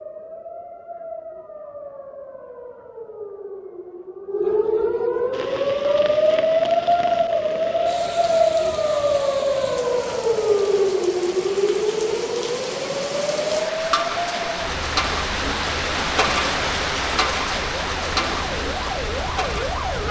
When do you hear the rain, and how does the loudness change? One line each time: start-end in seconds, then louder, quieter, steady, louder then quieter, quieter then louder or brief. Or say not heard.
5.3-20.0 louder.